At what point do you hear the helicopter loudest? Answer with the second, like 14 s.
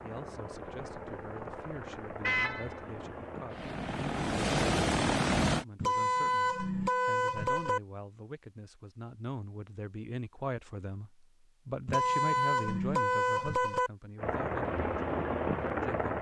5 s.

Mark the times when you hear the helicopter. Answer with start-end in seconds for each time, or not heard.
0.0-5.7, 14.2-16.1.